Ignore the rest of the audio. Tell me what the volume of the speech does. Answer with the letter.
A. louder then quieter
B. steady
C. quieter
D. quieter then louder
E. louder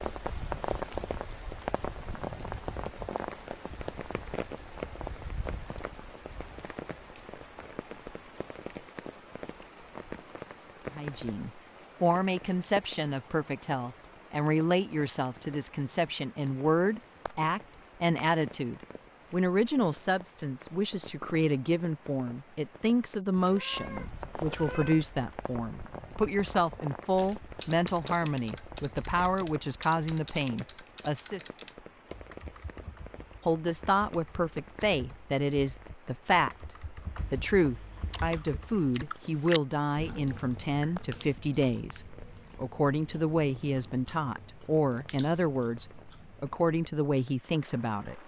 B.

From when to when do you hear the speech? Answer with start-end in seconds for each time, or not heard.
10.9-31.4, 33.5-48.2.